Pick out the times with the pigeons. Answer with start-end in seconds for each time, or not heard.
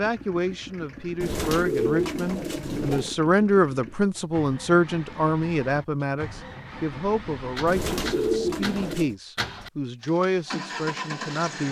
1.2-3.1, 7.7-9.2.